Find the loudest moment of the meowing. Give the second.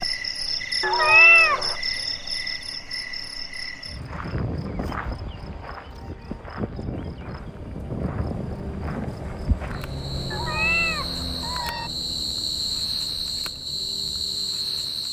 1 s.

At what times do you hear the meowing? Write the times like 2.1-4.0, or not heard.
0.8-1.8, 10.3-11.9.